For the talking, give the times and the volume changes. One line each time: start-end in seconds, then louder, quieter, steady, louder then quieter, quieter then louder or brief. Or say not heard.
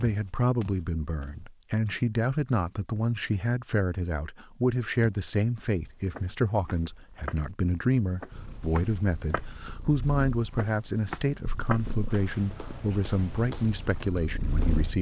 0.0-14.9 steady.